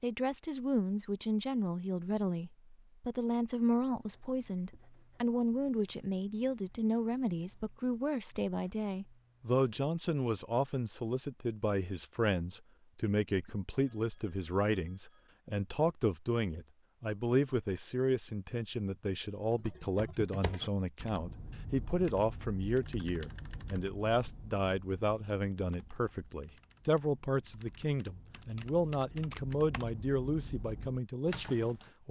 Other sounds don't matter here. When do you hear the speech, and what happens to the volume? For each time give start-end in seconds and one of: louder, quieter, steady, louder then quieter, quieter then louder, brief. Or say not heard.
0.0-32.0 steady.